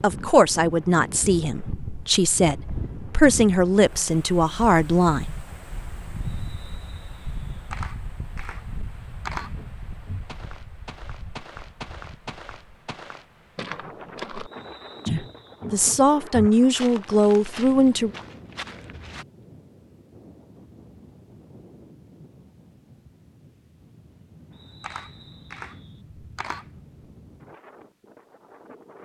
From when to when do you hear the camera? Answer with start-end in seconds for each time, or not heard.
7.7-9.6, 24.8-26.6.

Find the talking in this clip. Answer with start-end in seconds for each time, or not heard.
0.0-5.3, 15.1-18.1.